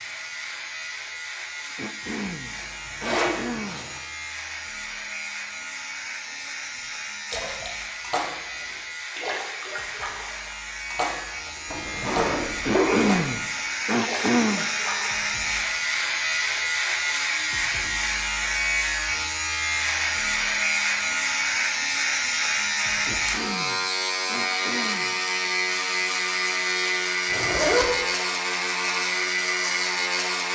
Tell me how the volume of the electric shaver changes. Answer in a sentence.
The loudness of the electric shaver goes up.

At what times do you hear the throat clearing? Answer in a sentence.
You can hear the throat clearing from 1.8 to 3.9 s, from 12.6 to 14.7 s and from 23.1 to 25.2 s.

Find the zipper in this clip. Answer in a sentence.
You can hear the zipper from 2.5 to 4.0 s, from 11.7 to 13.2 s and from 27.3 to 27.9 s.